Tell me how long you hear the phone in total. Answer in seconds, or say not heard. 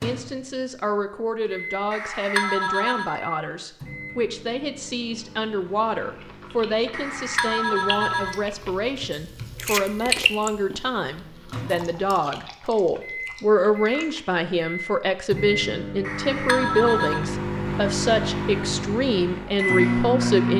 4 s.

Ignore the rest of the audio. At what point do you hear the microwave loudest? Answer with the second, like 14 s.
20 s.